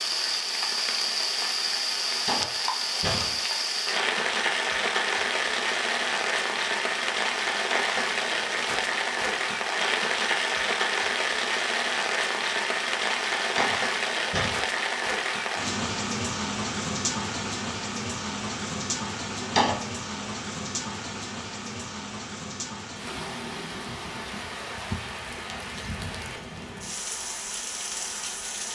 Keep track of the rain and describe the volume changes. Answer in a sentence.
The loudness of the rain goes down.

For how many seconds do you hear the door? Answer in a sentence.
You can hear the door for 3 seconds altogether.